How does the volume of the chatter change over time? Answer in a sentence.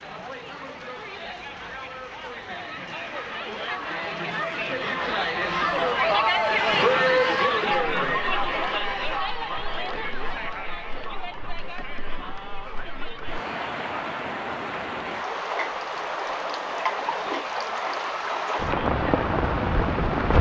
The volume of the chatter goes up, then down.